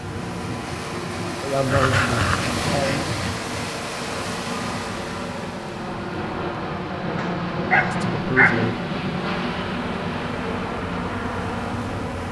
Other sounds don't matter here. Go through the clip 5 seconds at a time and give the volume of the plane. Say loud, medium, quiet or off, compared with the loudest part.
medium, loud, loud.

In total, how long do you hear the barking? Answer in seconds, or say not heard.
3 s.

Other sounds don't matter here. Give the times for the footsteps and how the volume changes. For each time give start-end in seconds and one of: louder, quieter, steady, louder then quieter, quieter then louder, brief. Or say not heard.
not heard.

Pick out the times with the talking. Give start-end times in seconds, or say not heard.
1.4-3.0, 7.8-8.8.